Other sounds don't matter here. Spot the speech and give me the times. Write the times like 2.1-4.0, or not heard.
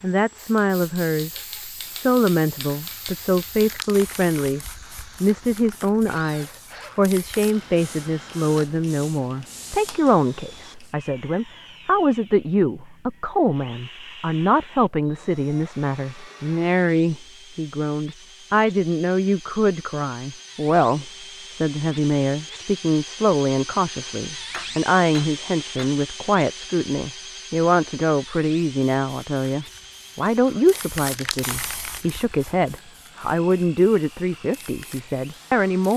0.0-35.9.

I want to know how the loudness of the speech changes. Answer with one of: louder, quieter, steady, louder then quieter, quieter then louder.
steady.